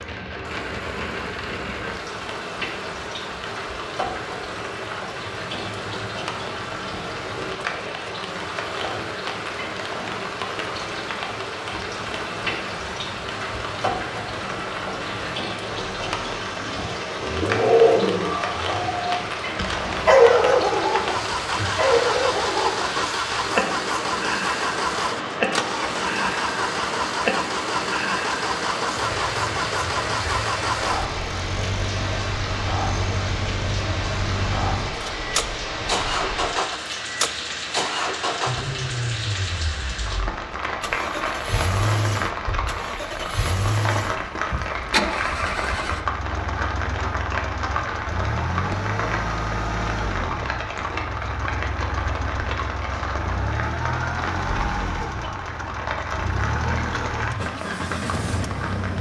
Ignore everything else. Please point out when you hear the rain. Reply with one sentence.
You can hear the rain from 0.0 to 58.9 s.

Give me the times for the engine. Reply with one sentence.
You can hear the engine from 0.0 to 58.9 s.